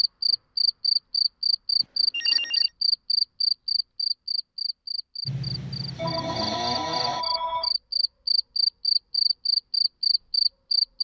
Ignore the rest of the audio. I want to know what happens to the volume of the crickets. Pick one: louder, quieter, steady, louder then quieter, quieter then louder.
quieter then louder.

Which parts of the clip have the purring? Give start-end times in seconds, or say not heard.
not heard.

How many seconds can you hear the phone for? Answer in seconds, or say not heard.
3 s.